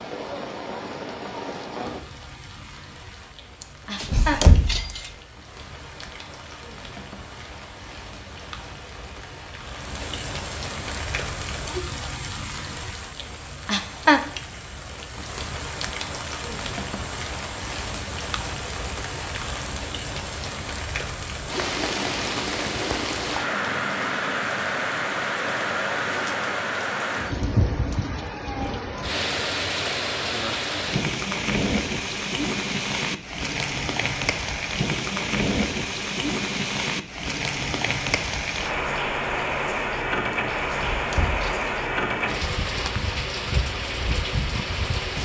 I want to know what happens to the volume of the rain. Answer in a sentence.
The volume of the rain goes up.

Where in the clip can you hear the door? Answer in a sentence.
You can hear the door from 4.0 to 5.0 s and from 40.7 to 41.7 s.